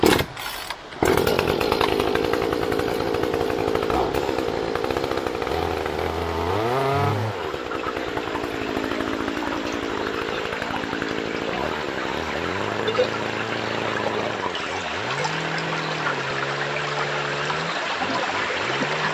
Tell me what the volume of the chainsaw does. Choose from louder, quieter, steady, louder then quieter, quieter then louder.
quieter.